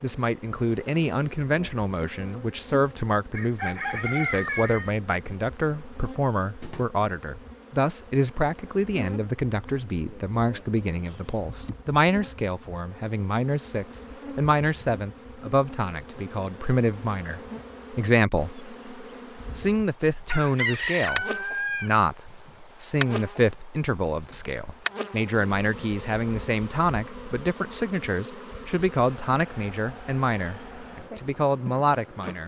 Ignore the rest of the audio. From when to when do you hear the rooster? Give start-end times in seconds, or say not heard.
3.3-4.9, 20.2-21.9.